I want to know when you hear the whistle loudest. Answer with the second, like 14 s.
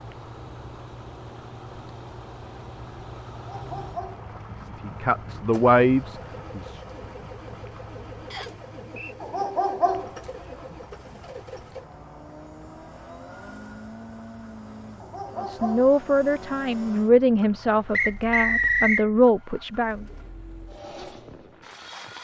19 s.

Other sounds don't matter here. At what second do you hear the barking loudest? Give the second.
10 s.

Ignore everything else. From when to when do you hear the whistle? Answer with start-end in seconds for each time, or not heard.
8.3-9.2, 17.9-19.1.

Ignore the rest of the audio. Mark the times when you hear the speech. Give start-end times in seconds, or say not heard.
4.8-6.8, 15.3-20.1.